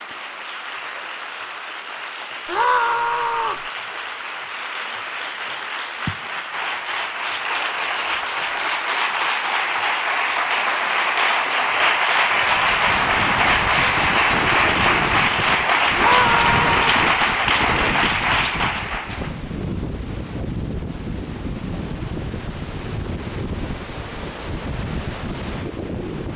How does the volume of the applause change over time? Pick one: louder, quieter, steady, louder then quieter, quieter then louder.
louder.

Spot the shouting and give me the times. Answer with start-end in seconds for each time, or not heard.
2.5-3.6, 15.9-16.8.